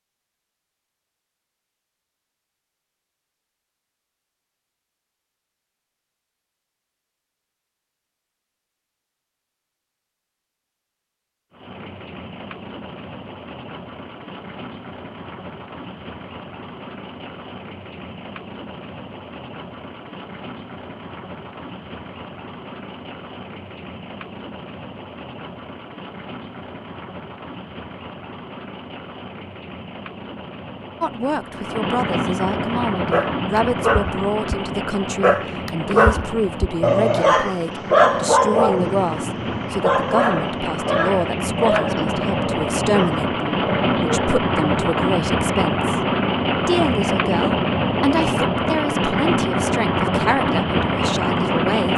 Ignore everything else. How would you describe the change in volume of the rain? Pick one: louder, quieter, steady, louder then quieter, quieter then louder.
louder.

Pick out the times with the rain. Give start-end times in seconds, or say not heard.
11.5-51.9.